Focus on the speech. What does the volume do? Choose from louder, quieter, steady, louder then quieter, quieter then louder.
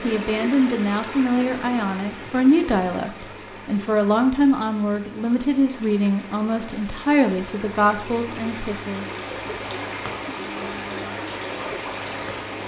steady.